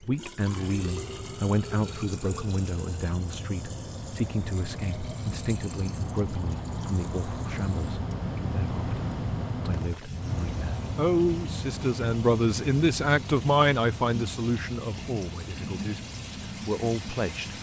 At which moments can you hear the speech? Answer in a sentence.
The speech can be heard from 0.0 to 17.5 s.